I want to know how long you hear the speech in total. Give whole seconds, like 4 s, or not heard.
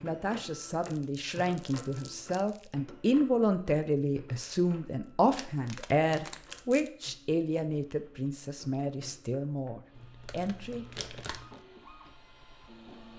11 s.